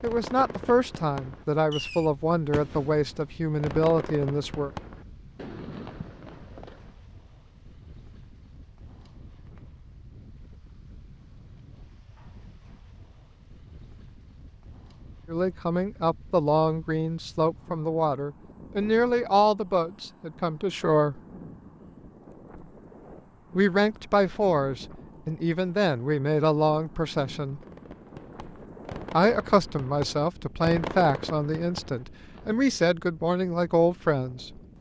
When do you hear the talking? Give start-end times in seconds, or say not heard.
0.0-4.7, 15.2-21.2, 23.6-27.6, 29.1-34.5.